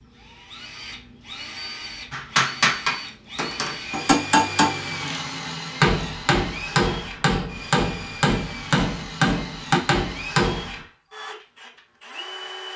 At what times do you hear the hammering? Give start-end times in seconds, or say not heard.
2.1-10.8.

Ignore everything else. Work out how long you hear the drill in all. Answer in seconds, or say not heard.
13 s.